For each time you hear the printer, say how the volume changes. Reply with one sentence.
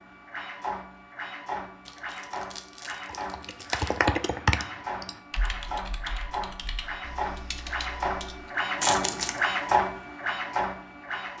The printer can be heard from 0.0 to 11.3 s, getting louder.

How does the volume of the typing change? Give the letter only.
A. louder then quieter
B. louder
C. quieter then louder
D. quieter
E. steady
D.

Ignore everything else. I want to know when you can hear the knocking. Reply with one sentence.
You can't hear the knocking here.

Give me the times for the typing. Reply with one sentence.
The typing can be heard from 2.9 to 8.5 s.